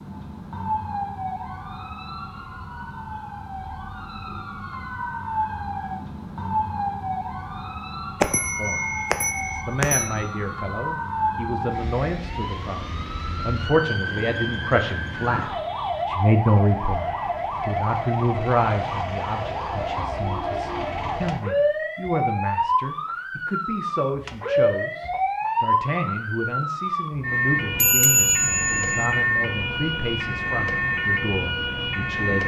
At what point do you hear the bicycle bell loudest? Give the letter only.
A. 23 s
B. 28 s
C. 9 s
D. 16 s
B.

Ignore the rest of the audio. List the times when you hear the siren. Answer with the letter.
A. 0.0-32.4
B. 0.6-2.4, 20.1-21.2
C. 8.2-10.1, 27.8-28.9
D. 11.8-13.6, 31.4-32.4
A.